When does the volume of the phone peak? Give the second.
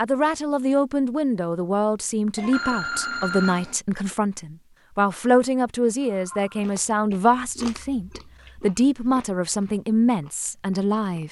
3 s.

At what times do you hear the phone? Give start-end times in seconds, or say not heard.
2.4-3.8, 6.0-6.5.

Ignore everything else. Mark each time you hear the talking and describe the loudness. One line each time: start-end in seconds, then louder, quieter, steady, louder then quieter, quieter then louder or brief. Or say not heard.
0.0-11.2 steady.